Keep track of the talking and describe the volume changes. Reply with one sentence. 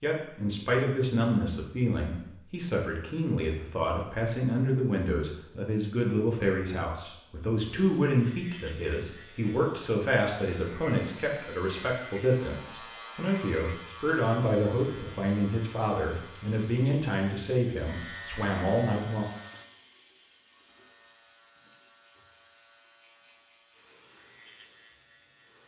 The volume of the talking stays about the same.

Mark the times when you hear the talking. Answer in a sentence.
The talking can be heard from 0.0 to 19.2 s.